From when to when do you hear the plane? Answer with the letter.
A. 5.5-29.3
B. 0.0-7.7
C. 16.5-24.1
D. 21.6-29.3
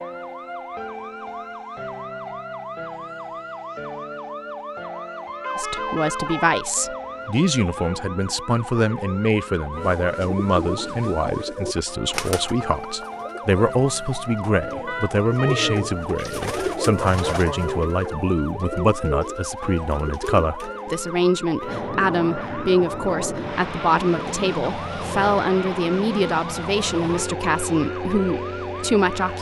D.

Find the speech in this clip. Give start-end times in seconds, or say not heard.
5.5-29.3.